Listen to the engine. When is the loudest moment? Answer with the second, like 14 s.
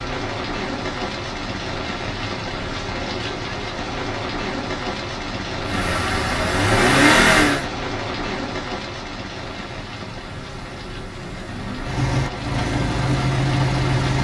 7 s.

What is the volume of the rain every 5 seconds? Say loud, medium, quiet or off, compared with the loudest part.
loud, loud, medium.